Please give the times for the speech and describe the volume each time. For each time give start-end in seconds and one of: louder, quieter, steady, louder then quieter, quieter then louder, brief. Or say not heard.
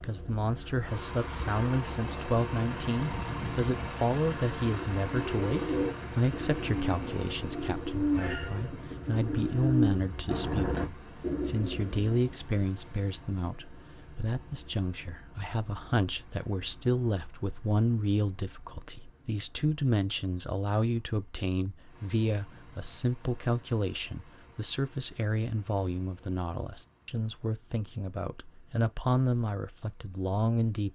0.0-30.8 steady.